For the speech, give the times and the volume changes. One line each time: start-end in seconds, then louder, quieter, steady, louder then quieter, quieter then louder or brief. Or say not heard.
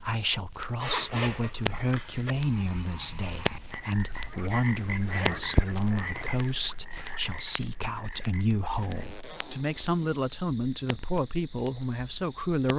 0.0-12.7 steady.